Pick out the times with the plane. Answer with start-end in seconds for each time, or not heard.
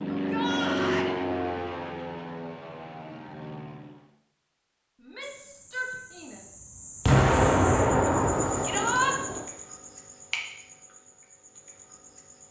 0.0-4.1.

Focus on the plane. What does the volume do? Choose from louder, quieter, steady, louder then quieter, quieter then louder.
quieter.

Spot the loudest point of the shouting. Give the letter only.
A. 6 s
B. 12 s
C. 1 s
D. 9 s
D.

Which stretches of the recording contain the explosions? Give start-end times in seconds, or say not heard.
7.0-9.4.